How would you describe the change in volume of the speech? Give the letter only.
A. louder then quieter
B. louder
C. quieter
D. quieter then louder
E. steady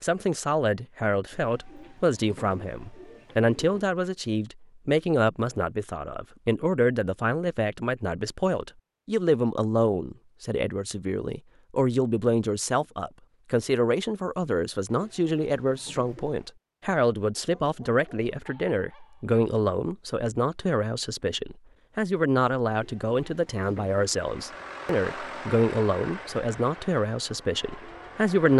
E.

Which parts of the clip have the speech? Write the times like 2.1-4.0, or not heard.
0.0-28.5.